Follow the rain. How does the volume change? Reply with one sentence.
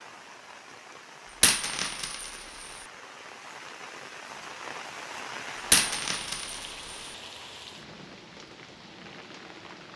The loudness of the rain goes up, then down.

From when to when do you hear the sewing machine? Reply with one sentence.
The sewing machine can't be heard in this clip.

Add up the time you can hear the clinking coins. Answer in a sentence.
The clinking coins can be heard for 3 seconds in total.